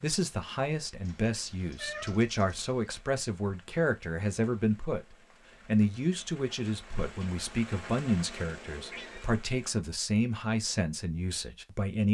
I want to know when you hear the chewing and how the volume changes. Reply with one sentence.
The chewing can't be heard in this clip.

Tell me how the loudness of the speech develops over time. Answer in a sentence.
The loudness of the speech stays about the same.